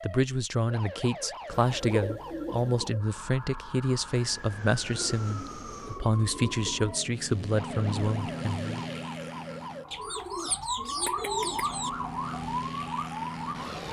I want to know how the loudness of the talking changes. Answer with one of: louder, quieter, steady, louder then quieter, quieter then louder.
steady.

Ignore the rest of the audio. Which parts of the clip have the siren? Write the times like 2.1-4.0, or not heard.
0.0-13.8.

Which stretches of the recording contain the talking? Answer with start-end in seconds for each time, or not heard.
0.0-8.8.